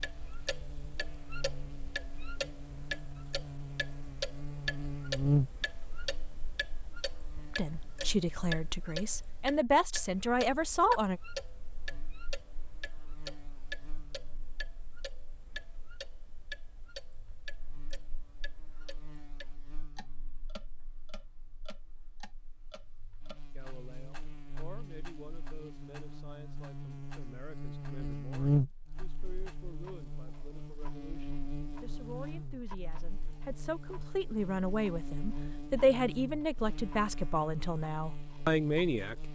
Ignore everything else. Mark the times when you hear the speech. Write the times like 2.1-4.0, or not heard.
7.5-11.2, 23.6-39.1.